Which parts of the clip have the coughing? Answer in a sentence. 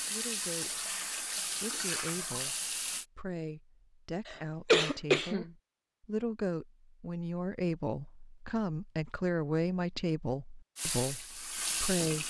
You can hear the coughing from 4.2 to 5.5 s.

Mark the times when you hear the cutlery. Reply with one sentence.
You can't hear the cutlery here.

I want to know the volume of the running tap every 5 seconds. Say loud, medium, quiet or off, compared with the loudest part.
loud, off, loud.